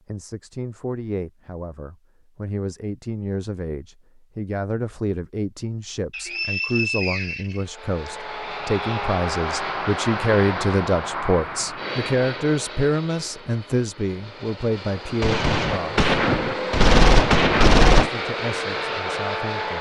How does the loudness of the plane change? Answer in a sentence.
The volume of the plane goes down, then up.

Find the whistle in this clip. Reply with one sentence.
The whistle can be heard from 6.1 to 8.1 s.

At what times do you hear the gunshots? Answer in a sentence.
You can hear the gunshots from 15.2 to 18.1 s.